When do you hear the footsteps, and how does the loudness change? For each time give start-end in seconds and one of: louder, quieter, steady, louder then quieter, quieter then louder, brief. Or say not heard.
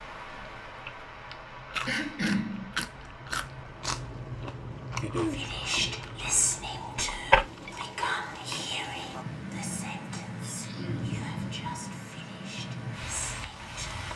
not heard.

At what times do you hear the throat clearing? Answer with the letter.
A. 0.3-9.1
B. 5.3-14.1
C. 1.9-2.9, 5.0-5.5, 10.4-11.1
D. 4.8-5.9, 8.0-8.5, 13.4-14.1
C.